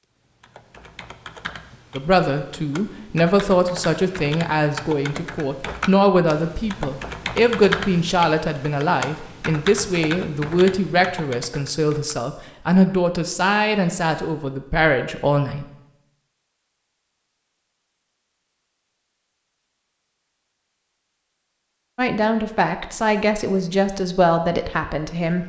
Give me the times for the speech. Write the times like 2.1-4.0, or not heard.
1.9-15.7, 21.9-25.4.